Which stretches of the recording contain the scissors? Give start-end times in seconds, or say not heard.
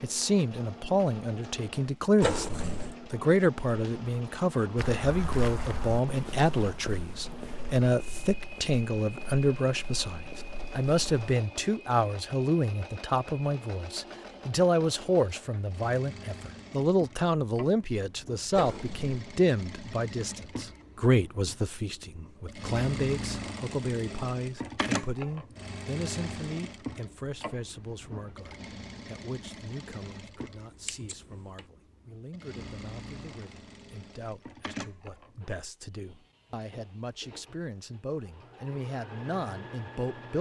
2.2-3.0, 18.6-19.2, 30.9-31.6.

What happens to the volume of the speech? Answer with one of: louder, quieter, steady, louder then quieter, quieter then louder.
quieter.